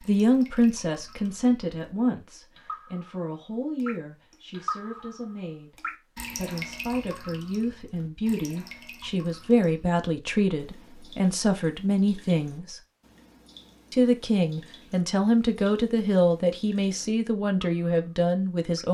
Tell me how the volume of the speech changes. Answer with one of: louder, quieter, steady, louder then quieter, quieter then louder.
quieter then louder.